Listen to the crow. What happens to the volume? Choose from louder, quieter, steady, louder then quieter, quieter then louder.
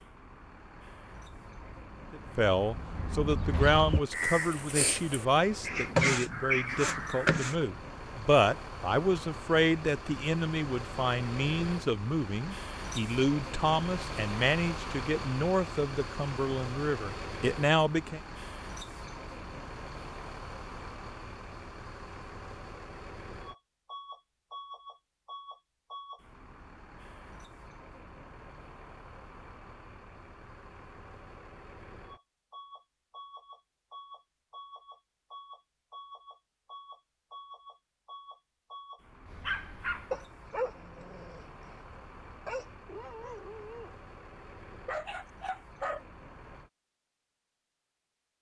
louder.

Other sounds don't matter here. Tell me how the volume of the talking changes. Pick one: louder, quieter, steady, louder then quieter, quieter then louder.
steady.